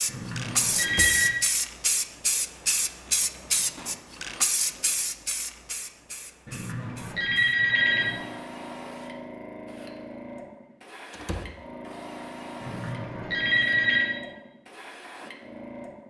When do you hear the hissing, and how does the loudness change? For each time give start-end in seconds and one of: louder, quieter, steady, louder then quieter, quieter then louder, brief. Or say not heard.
0.0-16.0 quieter.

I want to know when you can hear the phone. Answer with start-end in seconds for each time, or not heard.
0.1-1.4, 6.5-8.2, 12.6-14.1.